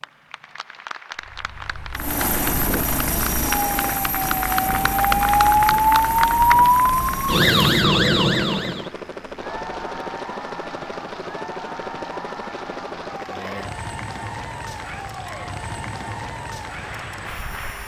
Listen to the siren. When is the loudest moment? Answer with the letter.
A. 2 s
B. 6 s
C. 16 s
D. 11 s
B.